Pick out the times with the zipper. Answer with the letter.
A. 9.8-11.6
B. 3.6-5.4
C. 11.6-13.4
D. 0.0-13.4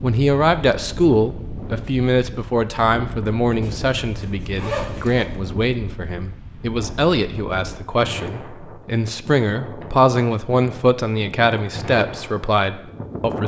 B.